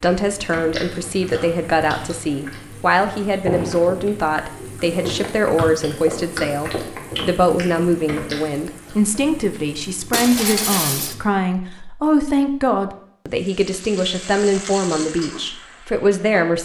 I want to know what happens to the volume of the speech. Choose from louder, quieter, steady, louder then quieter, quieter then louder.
steady.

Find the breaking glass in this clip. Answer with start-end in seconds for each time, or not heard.
10.1-11.2.